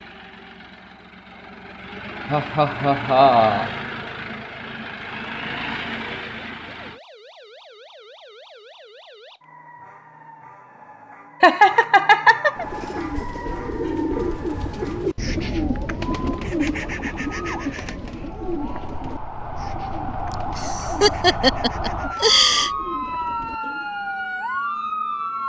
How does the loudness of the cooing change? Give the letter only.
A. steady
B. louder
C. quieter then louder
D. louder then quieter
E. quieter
E.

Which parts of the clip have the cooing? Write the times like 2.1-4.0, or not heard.
12.6-23.9.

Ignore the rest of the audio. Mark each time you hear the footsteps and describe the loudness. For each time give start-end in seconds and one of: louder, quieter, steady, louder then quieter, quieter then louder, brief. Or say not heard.
not heard.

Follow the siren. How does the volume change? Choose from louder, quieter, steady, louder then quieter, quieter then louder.
louder.